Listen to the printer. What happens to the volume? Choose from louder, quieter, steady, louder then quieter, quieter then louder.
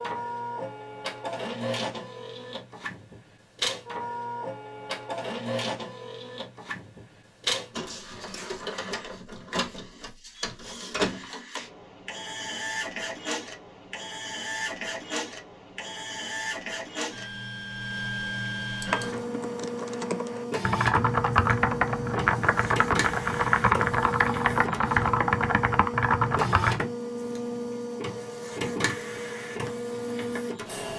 steady.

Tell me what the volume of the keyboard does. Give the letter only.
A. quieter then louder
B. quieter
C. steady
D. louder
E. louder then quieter
D.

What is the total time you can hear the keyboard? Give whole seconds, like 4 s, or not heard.
8 s.